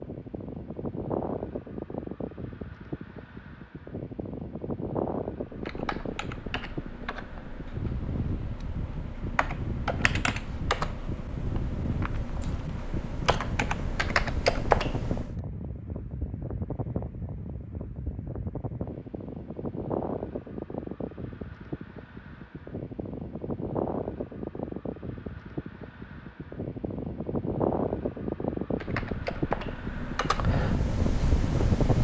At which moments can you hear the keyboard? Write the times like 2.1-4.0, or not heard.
5.5-15.3, 28.7-32.0.